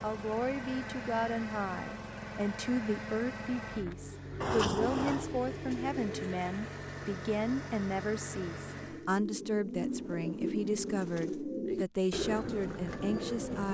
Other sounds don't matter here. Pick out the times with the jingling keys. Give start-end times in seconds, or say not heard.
4.4-5.3, 9.8-11.3.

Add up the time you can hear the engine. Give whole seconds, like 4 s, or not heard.
9 s.